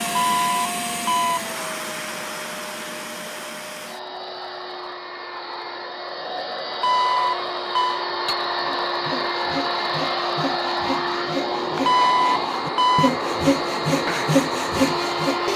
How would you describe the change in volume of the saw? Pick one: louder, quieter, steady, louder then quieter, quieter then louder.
louder.